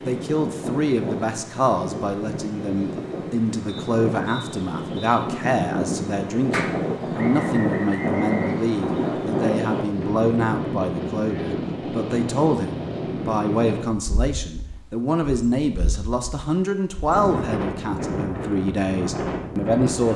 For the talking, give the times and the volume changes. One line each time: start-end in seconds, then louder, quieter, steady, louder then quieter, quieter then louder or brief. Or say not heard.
0.1-20.1 steady.